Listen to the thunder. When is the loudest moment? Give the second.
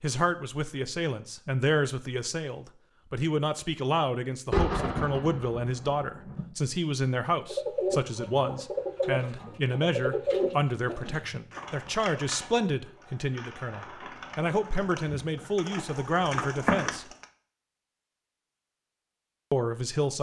5 s.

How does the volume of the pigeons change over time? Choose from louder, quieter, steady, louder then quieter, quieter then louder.
quieter then louder.